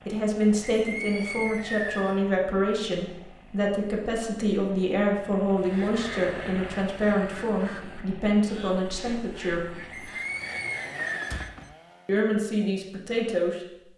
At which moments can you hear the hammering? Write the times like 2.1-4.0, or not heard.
not heard.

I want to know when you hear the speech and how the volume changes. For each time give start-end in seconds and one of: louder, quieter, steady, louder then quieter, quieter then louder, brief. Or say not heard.
0.1-9.7 steady
12.1-13.6 brief.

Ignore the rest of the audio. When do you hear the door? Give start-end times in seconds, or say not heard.
11.2-11.8.